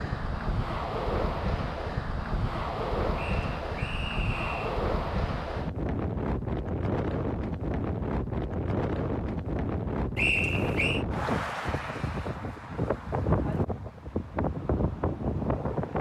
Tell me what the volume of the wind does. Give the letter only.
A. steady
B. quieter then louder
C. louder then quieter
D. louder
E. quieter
A.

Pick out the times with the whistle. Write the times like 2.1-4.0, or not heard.
3.1-4.7, 10.2-11.1.